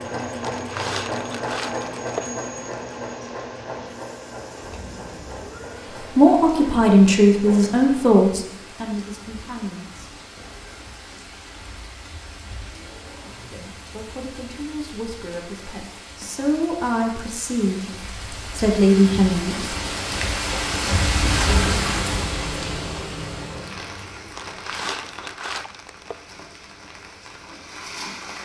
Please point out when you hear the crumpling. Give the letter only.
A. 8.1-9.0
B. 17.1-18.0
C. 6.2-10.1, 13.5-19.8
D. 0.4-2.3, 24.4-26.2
D.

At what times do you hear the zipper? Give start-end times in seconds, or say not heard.
12.8-13.7.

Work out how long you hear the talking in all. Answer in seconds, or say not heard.
10 s.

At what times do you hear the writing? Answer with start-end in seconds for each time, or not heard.
not heard.